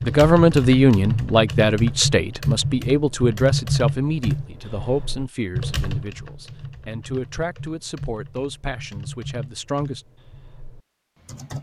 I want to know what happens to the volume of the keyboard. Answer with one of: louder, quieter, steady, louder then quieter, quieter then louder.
quieter.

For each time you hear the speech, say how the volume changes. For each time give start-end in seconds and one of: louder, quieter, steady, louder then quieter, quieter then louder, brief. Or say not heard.
0.0-10.1 quieter.